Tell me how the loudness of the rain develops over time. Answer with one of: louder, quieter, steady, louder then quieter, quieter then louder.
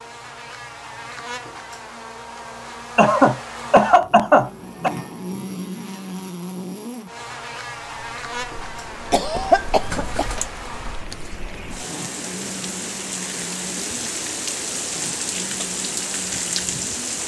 louder.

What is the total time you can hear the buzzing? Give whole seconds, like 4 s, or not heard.
17 s.